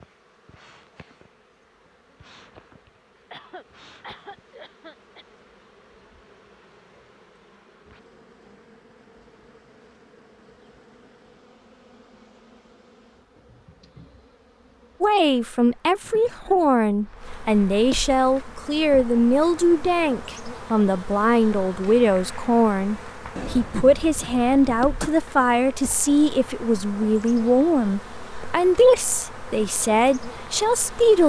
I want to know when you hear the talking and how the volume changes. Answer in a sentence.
You can hear the talking from 15.0 to 31.2 s, at a steady volume.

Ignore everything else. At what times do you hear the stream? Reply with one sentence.
The stream can't be heard in this clip.